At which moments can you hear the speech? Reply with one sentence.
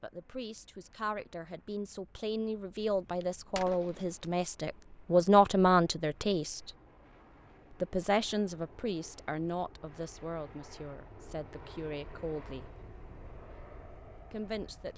The speech can be heard from 0.0 to 6.7 s, from 7.7 to 12.8 s and from 14.2 to 14.9 s.